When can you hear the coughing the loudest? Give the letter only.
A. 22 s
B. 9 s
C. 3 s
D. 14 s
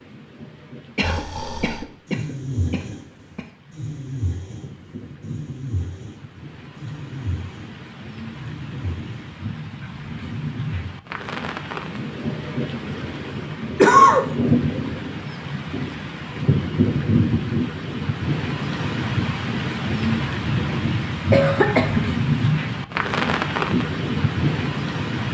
D.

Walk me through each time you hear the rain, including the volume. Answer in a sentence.
You can hear the rain from 0.0 to 25.3 s, getting louder.